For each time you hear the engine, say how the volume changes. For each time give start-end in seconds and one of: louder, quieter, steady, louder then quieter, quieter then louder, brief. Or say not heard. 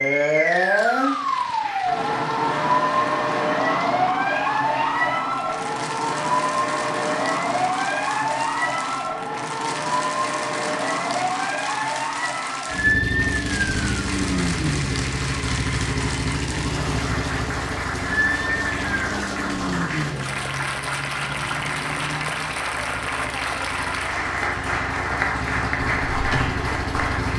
12.7-27.3 quieter then louder.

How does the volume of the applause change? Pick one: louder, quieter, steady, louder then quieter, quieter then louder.
louder.